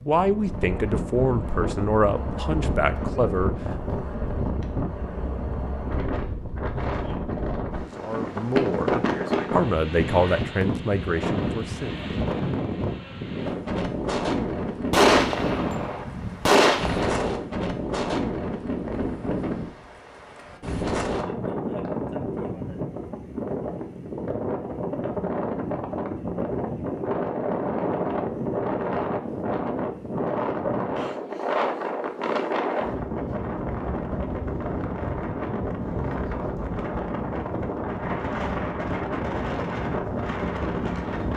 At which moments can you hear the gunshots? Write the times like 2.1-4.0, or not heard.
14.9-17.3.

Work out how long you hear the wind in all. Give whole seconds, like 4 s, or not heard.
41 s.